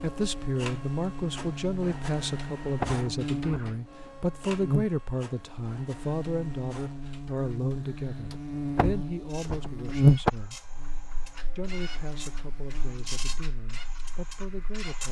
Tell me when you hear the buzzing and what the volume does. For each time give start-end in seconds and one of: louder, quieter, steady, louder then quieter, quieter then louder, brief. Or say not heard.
0.0-14.9 louder then quieter.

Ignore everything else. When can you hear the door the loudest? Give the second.
10 s.